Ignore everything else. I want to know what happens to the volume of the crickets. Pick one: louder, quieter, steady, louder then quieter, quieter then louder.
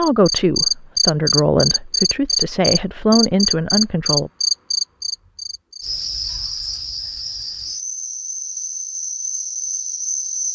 quieter.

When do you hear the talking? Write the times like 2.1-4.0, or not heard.
0.0-4.3.